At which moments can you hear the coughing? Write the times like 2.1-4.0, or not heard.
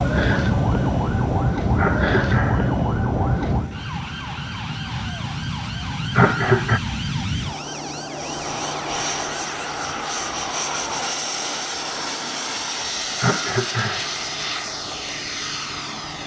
1.8-2.7, 6.2-6.8, 13.2-14.1.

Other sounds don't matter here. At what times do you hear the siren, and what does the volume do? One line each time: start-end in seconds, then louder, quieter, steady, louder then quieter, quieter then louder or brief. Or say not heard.
0.0-11.1 quieter.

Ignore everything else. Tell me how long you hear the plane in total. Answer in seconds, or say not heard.
16 s.